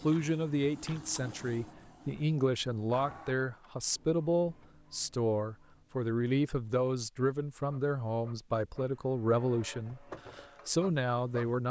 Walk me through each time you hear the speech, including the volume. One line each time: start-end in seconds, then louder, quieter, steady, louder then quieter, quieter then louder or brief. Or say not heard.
0.0-11.6 steady.